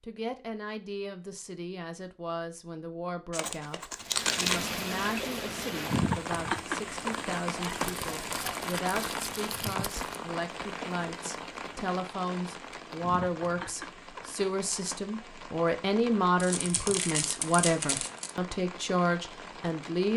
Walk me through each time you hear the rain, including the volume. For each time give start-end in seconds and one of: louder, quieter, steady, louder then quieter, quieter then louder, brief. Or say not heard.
4.0-20.1 quieter.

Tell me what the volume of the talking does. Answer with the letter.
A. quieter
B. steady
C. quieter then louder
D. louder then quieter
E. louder
E.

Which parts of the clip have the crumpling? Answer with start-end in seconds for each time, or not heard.
3.3-4.7, 7.7-10.2, 16.4-18.3.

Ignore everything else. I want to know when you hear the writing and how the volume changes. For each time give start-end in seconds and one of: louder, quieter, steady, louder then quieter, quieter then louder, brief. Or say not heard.
not heard.